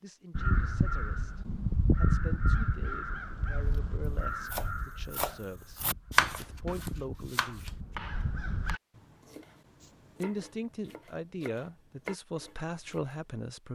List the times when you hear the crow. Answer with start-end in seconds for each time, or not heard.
0.3-8.8.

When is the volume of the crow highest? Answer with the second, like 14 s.
2 s.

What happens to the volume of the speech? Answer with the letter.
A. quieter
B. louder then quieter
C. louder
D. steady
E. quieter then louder
C.